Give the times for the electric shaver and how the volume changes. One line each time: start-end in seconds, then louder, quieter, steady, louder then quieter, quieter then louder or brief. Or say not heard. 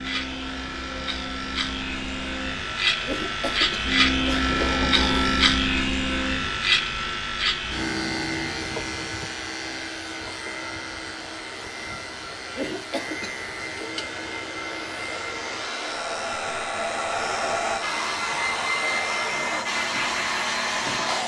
0.0-21.2 quieter.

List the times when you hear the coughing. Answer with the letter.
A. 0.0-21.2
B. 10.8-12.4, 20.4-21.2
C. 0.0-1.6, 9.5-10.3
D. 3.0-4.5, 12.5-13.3
D.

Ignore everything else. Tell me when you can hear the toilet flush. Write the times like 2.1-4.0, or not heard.
not heard.